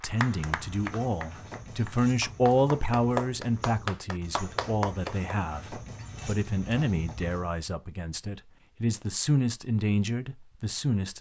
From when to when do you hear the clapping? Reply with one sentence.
You can hear the clapping from 0.0 to 5.3 s.